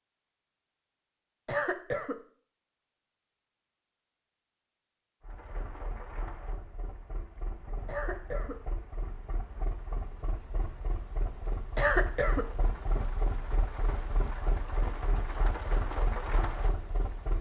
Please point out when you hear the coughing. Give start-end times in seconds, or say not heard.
1.4-2.1, 7.8-8.6, 11.8-12.4.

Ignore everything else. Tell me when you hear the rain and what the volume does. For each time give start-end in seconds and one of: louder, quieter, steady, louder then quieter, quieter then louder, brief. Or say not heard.
5.2-17.3 louder.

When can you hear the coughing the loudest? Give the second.
12 s.